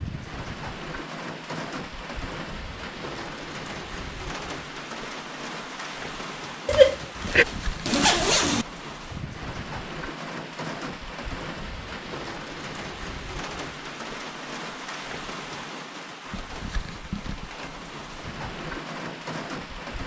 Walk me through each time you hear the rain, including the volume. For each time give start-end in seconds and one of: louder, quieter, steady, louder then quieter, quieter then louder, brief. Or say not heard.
0.0-20.0 steady.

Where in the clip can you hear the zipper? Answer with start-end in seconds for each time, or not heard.
6.7-8.7.